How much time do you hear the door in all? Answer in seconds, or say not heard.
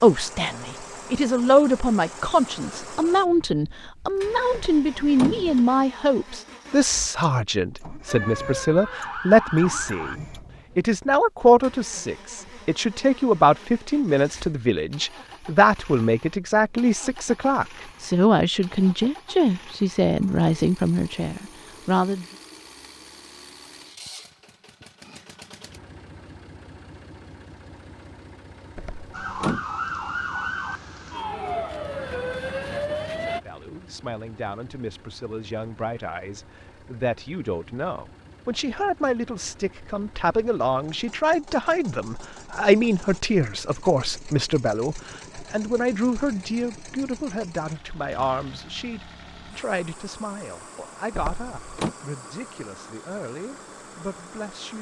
3 s.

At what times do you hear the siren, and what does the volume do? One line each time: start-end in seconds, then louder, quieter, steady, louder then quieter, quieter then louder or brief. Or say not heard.
8.1-10.2 brief
29.1-33.4 steady.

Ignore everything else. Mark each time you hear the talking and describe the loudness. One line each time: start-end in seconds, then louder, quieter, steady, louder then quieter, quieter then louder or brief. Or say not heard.
0.0-22.2 steady
33.2-54.7 louder then quieter.